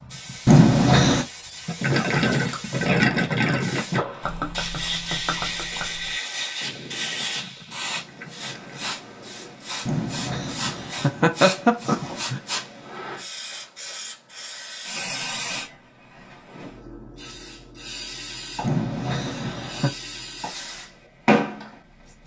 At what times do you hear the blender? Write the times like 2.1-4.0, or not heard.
not heard.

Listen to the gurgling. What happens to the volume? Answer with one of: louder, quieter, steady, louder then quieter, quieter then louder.
quieter.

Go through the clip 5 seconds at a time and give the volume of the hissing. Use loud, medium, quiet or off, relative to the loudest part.
medium, medium, medium, medium, loud.